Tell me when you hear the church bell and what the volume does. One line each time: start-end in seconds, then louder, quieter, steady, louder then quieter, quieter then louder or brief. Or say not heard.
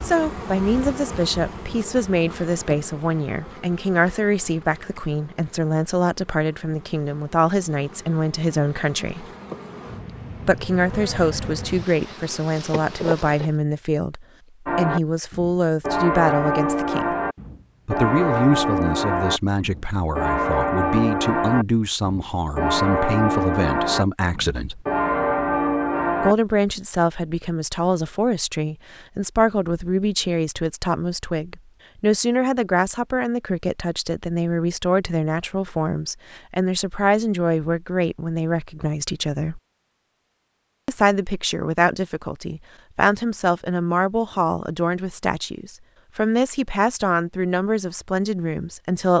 14.7-26.4 steady.